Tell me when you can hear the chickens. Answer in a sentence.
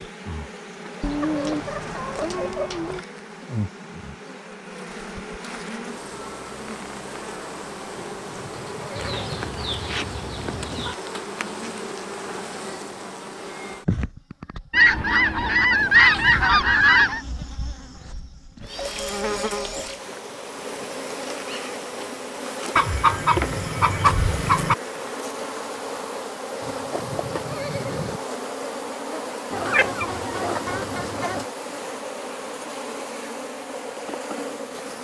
The chickens can be heard from 1.0 to 3.0 s, from 8.9 to 10.9 s, from 14.7 to 17.2 s, from 22.8 to 24.8 s and from 29.5 to 31.4 s.